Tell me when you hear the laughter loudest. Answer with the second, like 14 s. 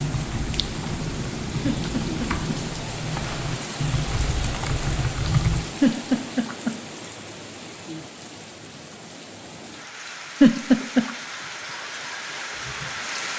11 s.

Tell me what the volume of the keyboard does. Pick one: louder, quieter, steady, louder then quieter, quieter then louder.
louder.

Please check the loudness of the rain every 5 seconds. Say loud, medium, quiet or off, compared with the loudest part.
loud, medium, loud.